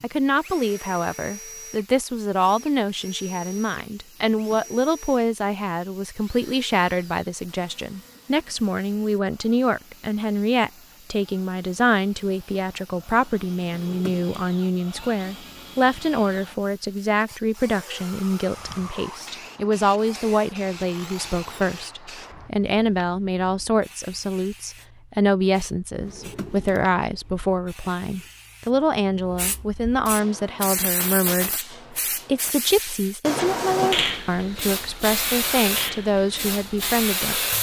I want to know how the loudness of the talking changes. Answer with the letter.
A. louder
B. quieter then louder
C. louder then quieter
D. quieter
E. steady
E.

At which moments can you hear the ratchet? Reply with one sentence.
You can't hear the ratchet here.